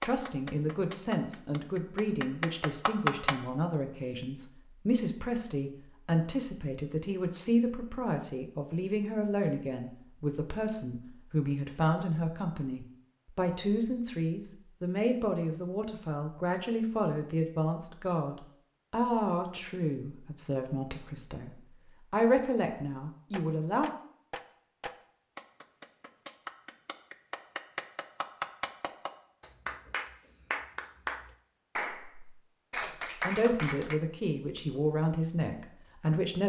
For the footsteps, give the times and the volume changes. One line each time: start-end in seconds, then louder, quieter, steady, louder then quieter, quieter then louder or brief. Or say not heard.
not heard.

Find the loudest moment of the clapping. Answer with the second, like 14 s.
3 s.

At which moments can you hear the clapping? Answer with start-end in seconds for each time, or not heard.
0.0-3.4, 23.3-34.0.